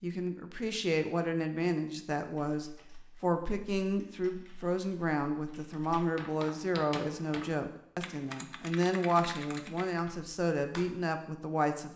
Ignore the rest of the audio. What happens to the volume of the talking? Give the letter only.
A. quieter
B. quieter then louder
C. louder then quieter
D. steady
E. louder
D.